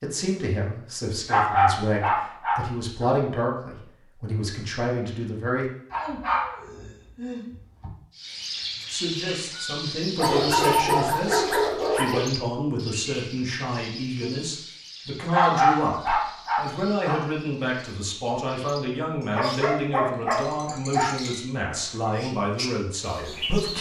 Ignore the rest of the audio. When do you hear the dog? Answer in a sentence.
The dog can be heard from 1.2 to 3.1 s, from 5.9 to 7.9 s, from 10.2 to 12.2 s, from 15.3 to 17.2 s and from 19.2 to 21.1 s.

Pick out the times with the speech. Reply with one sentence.
The speech can be heard from 0.0 to 5.7 s and from 8.9 to 23.7 s.